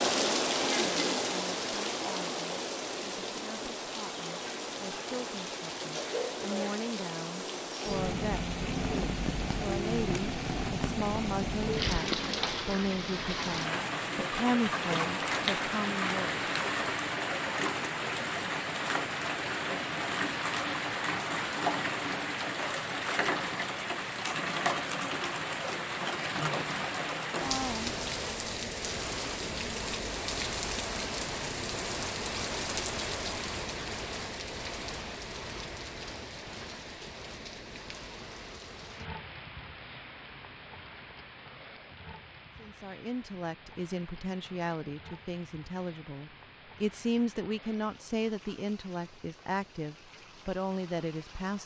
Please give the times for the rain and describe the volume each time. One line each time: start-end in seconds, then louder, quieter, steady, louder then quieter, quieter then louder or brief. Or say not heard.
0.0-51.6 quieter.